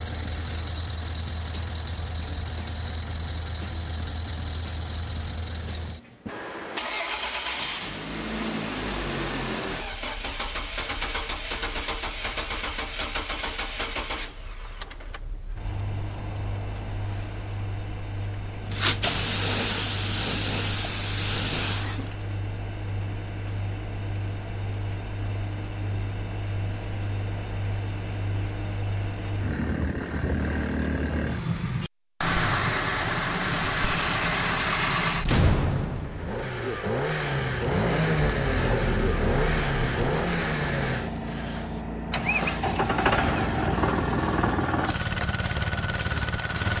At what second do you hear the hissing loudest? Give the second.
19 s.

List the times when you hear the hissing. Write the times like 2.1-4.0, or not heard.
18.6-22.1, 38.1-46.7.